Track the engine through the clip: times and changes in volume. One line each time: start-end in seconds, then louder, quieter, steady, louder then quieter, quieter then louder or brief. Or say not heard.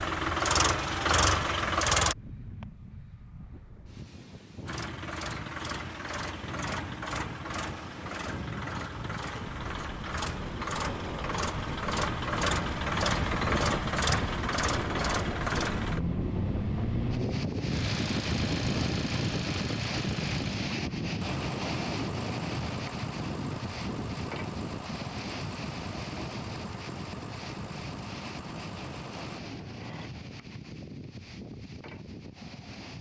0.0-2.1 brief
4.7-30.1 louder then quieter.